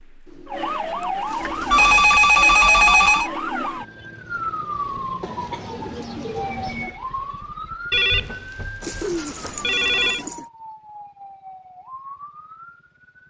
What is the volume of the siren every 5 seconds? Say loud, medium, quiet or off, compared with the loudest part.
loud, medium, quiet.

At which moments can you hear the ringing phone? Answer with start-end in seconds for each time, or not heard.
1.4-3.3, 7.9-10.2.